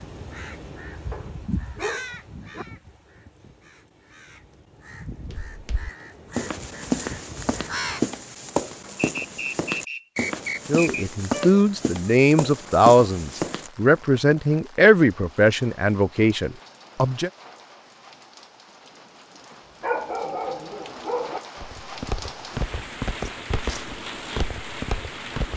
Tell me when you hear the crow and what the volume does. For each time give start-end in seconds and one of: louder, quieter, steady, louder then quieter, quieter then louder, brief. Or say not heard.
0.0-8.1 quieter then louder.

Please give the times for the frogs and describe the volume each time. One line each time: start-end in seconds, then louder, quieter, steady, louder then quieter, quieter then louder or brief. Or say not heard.
not heard.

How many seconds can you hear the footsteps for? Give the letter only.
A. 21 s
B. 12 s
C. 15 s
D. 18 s
B.